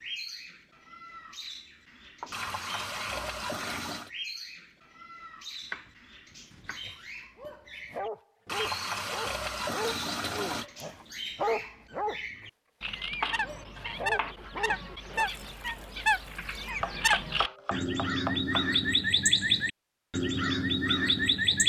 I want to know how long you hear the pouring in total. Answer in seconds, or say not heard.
5 s.